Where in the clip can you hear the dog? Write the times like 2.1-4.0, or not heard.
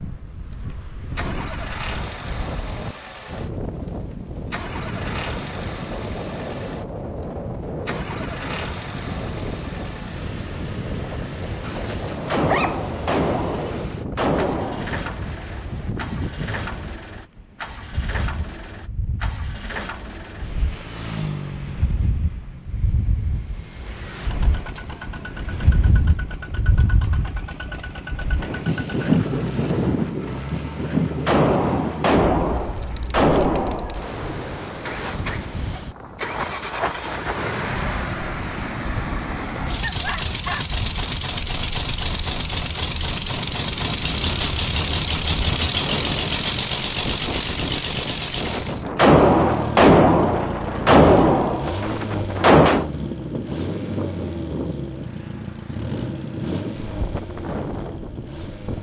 11.6-12.8, 39.8-40.7.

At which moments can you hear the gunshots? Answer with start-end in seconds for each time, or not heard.
12.2-15.0, 31.2-34.1, 49.0-52.9.